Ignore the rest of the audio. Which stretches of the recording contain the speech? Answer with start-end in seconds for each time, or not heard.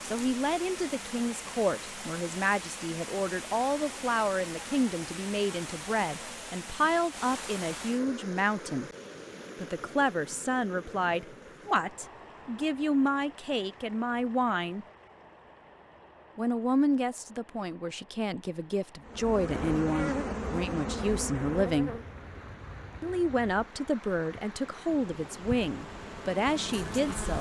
0.0-8.9, 9.6-14.8, 16.4-21.9, 23.0-27.3.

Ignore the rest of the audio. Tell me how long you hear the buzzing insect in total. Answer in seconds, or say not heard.
8 s.